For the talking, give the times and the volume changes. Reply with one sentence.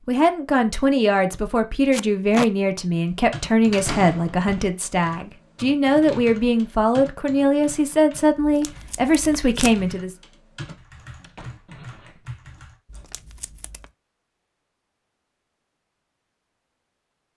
You can hear the talking from 0.1 to 10.2 s, at a steady volume.